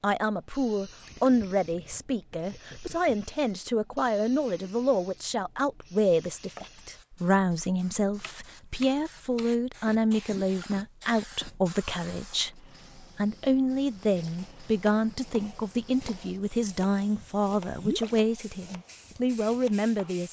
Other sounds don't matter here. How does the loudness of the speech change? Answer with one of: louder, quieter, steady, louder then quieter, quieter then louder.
steady.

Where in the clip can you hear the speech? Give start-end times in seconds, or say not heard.
0.0-20.2.